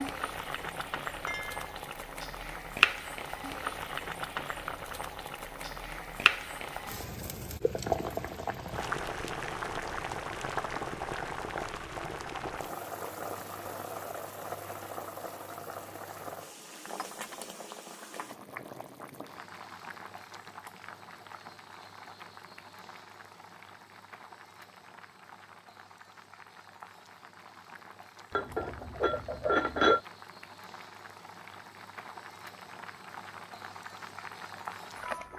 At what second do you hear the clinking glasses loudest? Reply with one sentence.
The volume of the clinking glasses peaks at 30 seconds.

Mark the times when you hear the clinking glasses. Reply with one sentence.
The clinking glasses can be heard from 1.2 to 1.7 s, from 16.9 to 17.4 s and from 28.4 to 30.0 s.